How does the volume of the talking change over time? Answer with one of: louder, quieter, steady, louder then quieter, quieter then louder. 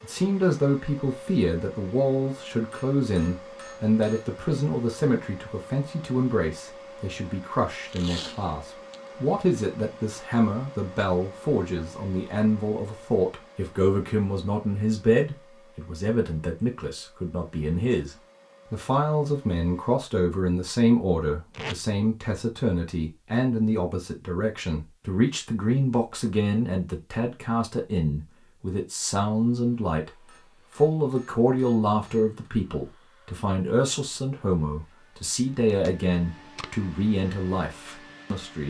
steady.